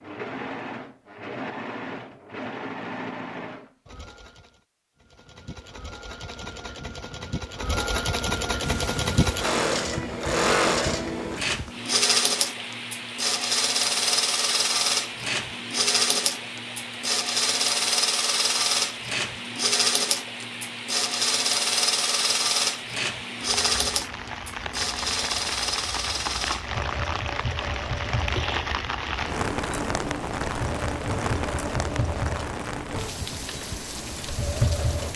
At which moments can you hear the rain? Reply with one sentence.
You can hear the rain from 8.6 to 35.1 s.